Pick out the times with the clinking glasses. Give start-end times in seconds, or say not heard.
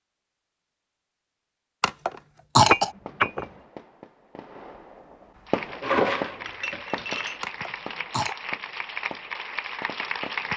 2.7-3.5, 5.8-7.4.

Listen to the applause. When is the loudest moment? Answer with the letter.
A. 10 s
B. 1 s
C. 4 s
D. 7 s
A.